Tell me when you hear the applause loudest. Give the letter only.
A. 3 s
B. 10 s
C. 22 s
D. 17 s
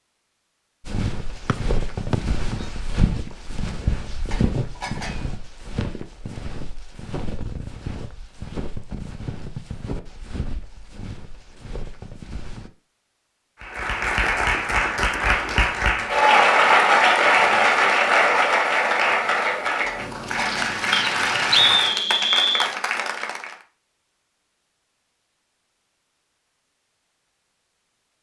D.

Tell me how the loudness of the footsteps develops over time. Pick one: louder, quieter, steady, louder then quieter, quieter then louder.
quieter.